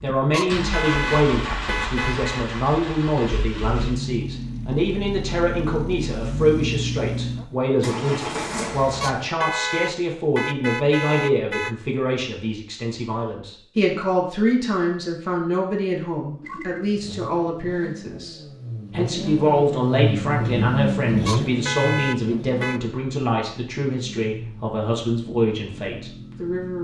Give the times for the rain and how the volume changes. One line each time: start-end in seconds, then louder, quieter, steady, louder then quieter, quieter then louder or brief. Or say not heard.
not heard.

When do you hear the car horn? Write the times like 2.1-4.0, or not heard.
0.3-2.5, 9.0-11.8, 21.2-22.8.